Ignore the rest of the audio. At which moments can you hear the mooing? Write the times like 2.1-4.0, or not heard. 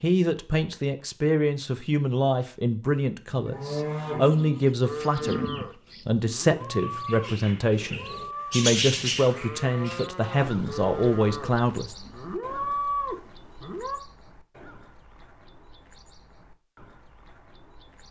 2.8-14.0.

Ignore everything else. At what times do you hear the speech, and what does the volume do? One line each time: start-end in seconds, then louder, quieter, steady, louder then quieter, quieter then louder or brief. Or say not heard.
0.0-11.9 steady.